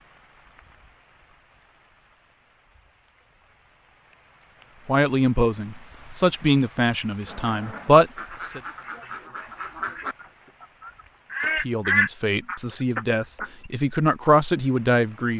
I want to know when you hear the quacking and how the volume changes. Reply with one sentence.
The quacking can be heard from 7.2 to 13.7 s, getting louder then quieter.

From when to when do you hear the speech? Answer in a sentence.
You can hear the speech from 4.8 to 8.6 s and from 11.4 to 15.3 s.